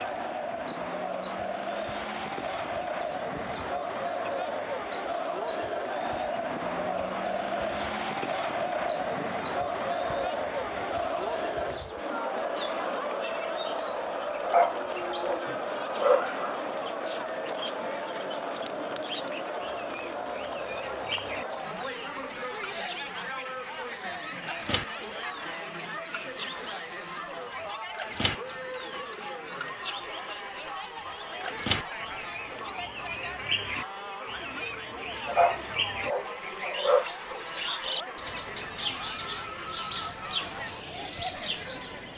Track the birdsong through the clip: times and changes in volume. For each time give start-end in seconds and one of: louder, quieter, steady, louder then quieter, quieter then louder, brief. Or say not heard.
0.0-42.1 louder.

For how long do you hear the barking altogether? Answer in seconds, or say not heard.
4 s.